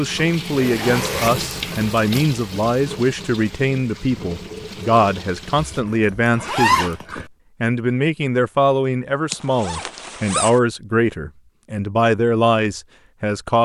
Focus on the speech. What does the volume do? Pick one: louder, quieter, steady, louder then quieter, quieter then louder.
steady.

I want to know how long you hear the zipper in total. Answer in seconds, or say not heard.
5 s.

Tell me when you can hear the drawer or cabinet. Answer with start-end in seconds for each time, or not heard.
not heard.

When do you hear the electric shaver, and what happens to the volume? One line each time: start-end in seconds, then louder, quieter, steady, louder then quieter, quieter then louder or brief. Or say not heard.
not heard.